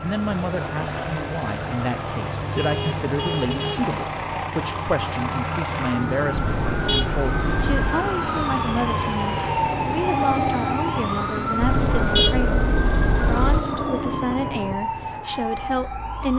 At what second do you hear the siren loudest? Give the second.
10 s.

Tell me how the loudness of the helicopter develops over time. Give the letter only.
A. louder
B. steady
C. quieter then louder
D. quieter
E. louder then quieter
B.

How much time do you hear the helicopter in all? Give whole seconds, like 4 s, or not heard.
15 s.